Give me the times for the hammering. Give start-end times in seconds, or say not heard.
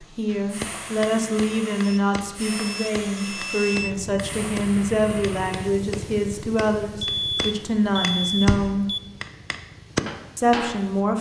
0.2-10.8.